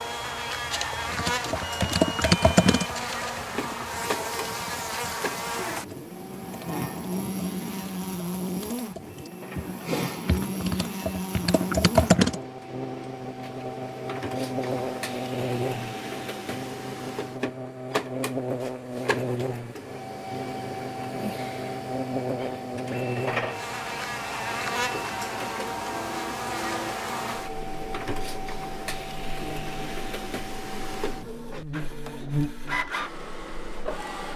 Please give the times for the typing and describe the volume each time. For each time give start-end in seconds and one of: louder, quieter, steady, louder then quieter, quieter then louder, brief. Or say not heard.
1.1-12.4 quieter then louder.